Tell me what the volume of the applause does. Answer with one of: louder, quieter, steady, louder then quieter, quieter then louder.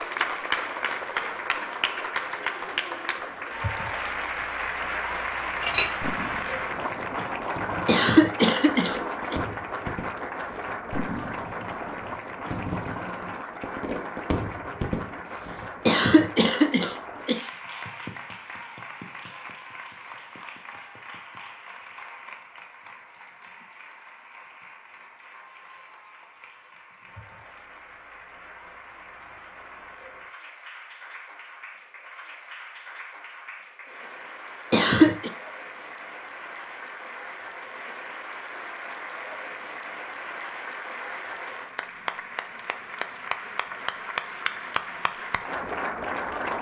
quieter then louder.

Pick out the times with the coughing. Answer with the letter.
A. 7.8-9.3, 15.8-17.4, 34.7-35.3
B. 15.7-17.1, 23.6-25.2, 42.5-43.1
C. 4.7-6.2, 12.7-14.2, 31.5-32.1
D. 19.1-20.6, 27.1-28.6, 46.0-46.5
A.